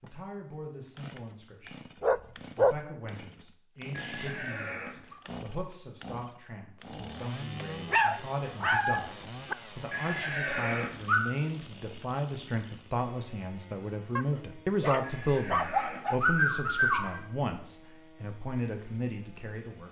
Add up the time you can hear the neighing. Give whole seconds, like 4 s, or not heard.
5 s.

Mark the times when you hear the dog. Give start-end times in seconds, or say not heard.
2.0-2.8, 7.6-9.6, 14.2-16.2.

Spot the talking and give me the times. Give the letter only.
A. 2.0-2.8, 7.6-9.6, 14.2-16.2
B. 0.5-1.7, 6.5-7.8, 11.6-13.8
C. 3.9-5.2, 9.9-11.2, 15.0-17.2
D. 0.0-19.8
D.